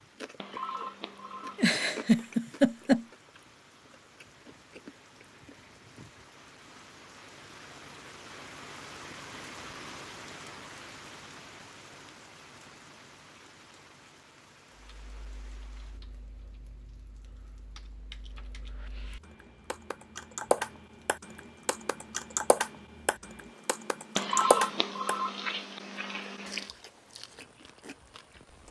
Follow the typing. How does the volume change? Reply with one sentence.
The volume of the typing goes up.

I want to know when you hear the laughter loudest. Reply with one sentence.
The loudest moment of the laughter is at 3 seconds.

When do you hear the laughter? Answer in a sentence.
You can hear the laughter from 1.6 to 3.0 s.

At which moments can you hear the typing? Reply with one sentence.
The typing can be heard from 14.9 to 25.1 s.